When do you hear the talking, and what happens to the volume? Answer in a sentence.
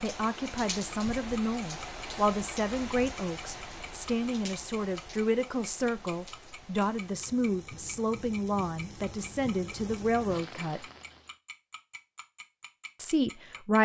The talking can be heard from 0.0 to 10.8 s, at a steady volume; and briefly from 12.9 to 13.7 s.